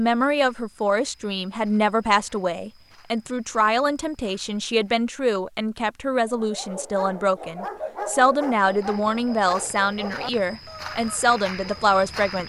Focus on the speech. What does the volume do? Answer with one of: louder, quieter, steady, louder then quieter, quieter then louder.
steady.